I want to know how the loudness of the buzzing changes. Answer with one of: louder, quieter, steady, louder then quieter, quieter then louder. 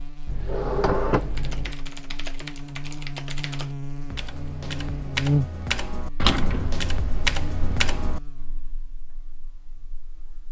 louder then quieter.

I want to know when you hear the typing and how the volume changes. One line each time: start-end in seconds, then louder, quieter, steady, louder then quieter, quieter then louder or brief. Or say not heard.
1.2-8.2 louder.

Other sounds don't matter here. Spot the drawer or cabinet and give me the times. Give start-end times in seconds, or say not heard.
0.2-1.8, 6.2-8.0.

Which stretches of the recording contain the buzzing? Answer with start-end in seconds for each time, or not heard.
0.0-10.4.